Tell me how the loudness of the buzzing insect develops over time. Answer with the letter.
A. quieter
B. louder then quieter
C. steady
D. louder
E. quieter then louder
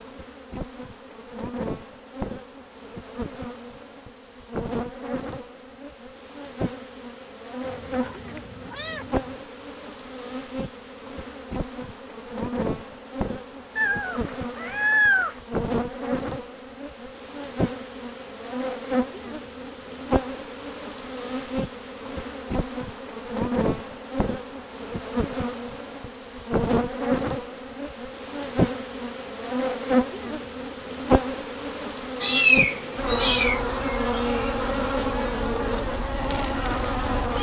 D.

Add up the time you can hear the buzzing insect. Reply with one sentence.
The buzzing insect can be heard for 37 seconds in total.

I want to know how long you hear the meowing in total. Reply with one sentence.
The meowing can be heard for 5 seconds in total.